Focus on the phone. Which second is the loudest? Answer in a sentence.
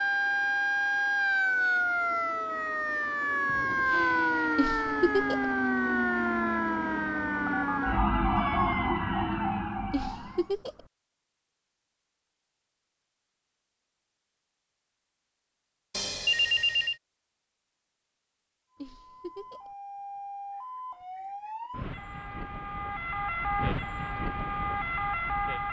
The loudest moment of the phone is at 16 seconds.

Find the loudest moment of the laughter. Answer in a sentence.
The loudest moment of the laughter is at 5 seconds.